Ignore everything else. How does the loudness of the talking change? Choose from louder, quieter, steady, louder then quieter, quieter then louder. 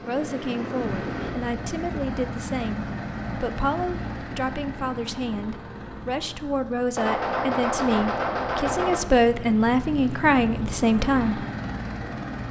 louder.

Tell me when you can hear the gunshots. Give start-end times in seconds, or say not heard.
7.0-9.0.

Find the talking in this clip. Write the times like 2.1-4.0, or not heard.
0.1-11.4.